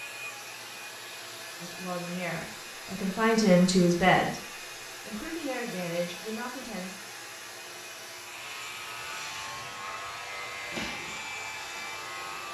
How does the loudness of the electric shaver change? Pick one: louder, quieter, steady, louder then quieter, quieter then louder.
steady.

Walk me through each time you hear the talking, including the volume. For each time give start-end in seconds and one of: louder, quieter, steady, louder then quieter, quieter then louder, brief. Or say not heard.
1.6-7.0 louder then quieter.